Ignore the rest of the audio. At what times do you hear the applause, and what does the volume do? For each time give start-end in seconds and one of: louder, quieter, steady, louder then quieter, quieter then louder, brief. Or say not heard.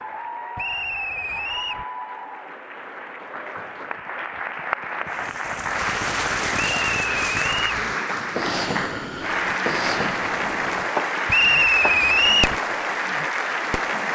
0.0-14.1 louder.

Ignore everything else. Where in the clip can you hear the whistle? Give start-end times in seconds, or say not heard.
0.6-1.9, 6.5-7.8, 11.2-12.6.